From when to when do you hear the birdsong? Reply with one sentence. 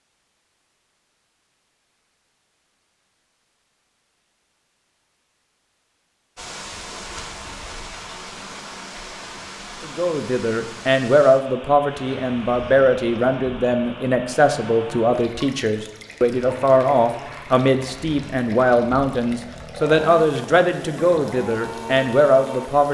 The birdsong can't be heard in this clip.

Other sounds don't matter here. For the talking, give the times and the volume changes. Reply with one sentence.
You can hear the talking from 9.8 to 22.8 s, at a steady volume.